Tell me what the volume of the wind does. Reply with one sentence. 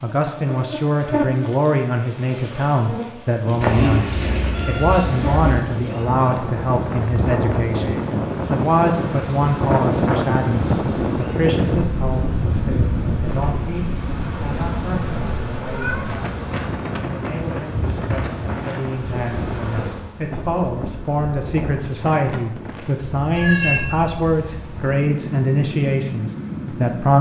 The loudness of the wind goes down.